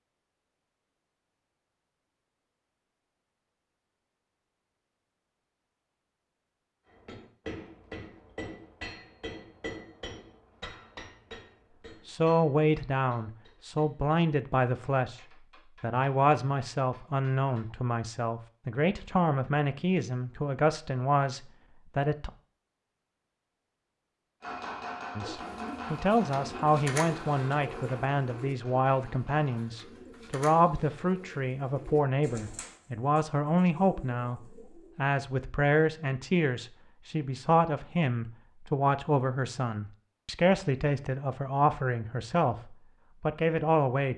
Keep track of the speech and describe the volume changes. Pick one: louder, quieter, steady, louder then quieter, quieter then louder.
steady.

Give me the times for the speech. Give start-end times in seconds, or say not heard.
12.1-15.2, 15.8-22.3, 25.1-44.1.